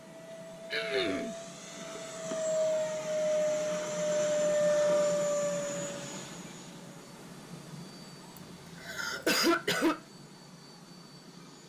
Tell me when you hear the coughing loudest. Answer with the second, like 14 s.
9 s.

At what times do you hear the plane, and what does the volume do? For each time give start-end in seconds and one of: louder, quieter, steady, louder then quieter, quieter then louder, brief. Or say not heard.
0.0-11.6 louder then quieter.